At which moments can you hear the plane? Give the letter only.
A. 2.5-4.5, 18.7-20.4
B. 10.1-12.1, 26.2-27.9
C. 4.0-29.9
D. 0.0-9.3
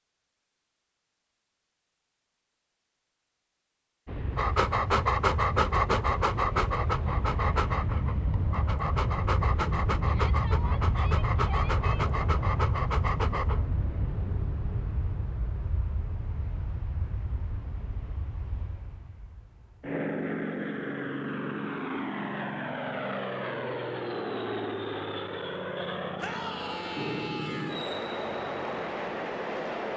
C.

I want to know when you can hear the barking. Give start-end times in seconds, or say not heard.
4.3-13.7.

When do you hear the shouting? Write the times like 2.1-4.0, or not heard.
10.1-12.1, 26.2-27.9.